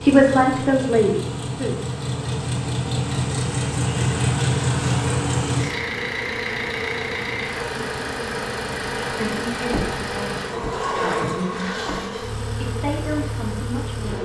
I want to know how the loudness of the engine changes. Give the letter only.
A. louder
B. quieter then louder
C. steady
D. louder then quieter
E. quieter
D.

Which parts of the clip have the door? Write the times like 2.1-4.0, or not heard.
9.7-12.0.